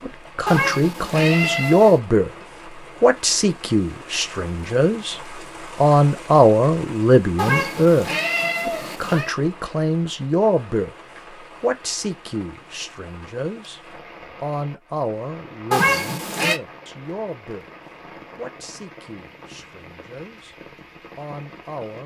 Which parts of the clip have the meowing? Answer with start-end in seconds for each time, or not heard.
0.5-2.0, 7.3-9.3, 15.7-16.6.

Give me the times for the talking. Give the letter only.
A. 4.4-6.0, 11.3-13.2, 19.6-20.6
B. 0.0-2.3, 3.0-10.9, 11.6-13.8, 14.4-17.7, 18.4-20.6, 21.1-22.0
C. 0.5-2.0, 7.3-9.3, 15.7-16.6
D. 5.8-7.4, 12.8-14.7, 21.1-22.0
B.